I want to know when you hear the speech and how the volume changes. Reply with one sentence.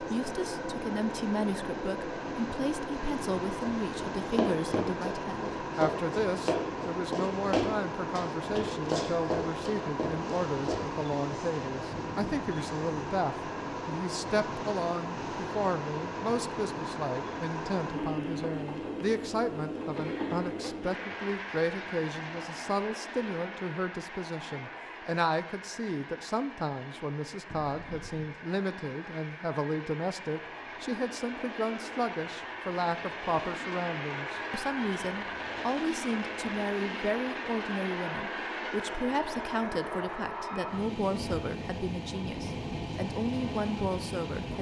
The speech can be heard from 0.0 to 44.5 s, at a steady volume.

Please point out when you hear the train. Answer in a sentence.
You can hear the train from 0.0 to 44.5 s.